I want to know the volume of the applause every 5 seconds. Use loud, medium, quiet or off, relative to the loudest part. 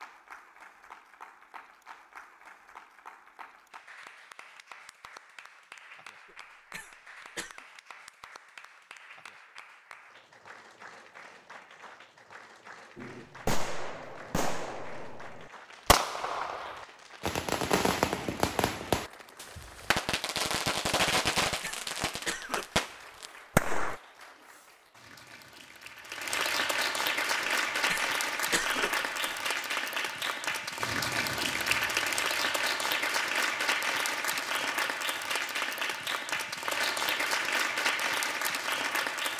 quiet, quiet, quiet, quiet, quiet, loud, loud, loud.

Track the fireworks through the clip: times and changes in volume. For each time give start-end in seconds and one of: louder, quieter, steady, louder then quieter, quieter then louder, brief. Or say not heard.
12.9-24.0 louder.